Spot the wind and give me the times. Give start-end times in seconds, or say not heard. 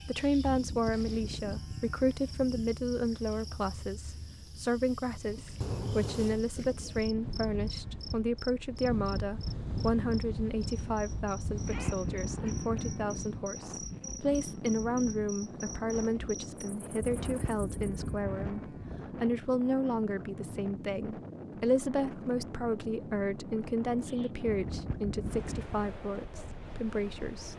5.2-27.5.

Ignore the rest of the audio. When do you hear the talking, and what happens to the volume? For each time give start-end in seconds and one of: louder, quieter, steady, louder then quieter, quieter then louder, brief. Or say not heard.
0.0-27.5 steady.